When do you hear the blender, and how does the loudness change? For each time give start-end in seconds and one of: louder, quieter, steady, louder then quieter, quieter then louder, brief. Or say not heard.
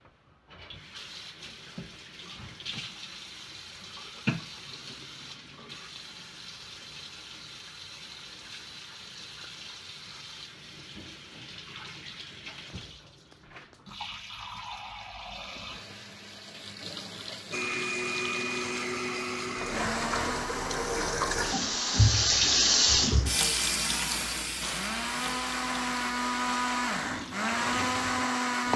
17.5-28.7 quieter then louder.